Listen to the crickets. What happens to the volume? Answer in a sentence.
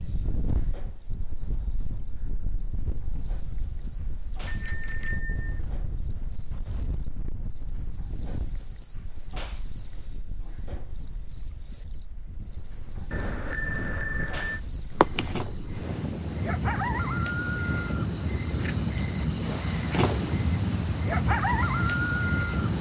The loudness of the crickets goes up.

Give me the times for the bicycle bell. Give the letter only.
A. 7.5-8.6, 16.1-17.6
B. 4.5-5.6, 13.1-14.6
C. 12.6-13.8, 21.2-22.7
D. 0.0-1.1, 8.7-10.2
B.